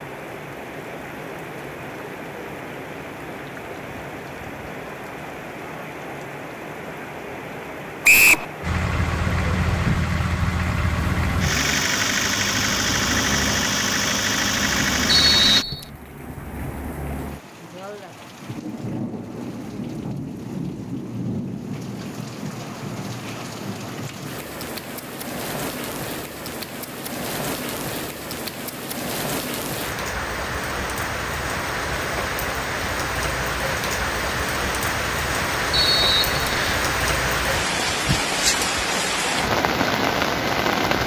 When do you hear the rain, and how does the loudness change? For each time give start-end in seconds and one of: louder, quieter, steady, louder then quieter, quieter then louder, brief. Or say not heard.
0.0-41.0 louder.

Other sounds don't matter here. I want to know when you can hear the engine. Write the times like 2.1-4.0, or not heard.
8.6-15.7.